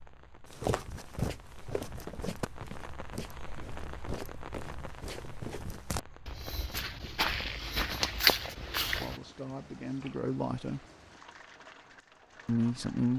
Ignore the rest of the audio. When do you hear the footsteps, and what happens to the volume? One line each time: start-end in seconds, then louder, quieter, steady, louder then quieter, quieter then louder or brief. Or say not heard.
0.5-9.2 quieter then louder.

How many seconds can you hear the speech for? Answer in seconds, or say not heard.
3 s.